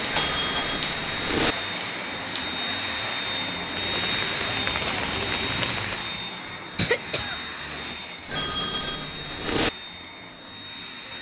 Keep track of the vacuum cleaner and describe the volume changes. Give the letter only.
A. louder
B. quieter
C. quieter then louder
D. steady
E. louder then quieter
B.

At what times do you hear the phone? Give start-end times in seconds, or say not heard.
0.1-1.6, 8.2-9.7.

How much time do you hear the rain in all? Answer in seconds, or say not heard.
6 s.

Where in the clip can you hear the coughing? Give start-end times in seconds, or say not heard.
6.8-8.0.